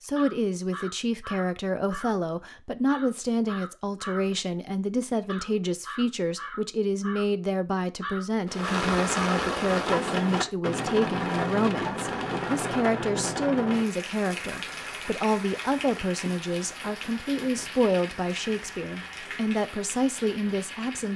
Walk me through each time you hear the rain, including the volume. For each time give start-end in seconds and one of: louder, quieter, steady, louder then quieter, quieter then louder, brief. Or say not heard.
8.4-21.1 quieter.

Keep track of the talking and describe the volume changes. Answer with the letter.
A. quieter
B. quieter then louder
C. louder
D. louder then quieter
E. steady
E.